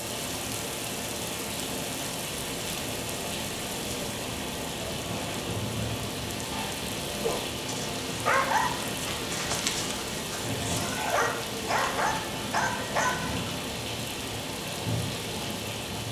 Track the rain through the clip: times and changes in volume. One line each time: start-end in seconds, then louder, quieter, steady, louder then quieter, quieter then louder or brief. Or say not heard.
0.0-16.0 steady.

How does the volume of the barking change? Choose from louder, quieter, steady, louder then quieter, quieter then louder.
quieter then louder.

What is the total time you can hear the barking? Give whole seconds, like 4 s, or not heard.
6 s.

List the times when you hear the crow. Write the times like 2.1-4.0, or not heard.
not heard.